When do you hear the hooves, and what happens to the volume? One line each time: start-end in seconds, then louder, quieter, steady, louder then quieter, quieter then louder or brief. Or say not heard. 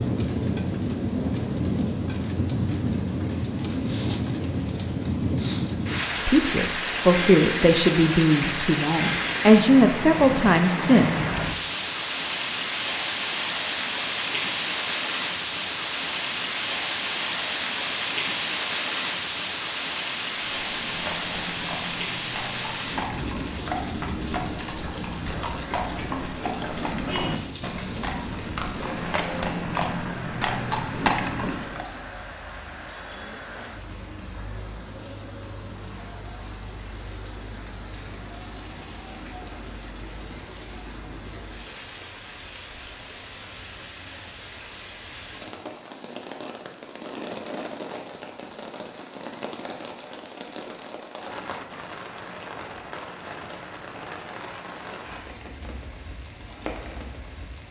20.4-31.9 louder.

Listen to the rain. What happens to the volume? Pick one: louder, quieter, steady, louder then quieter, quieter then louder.
quieter.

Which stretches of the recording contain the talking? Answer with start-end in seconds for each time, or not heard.
6.2-11.1.